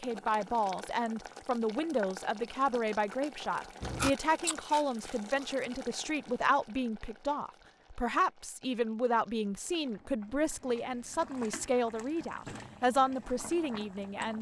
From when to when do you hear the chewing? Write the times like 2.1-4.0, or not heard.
3.8-5.5.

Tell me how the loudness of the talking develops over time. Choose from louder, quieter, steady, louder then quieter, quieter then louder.
steady.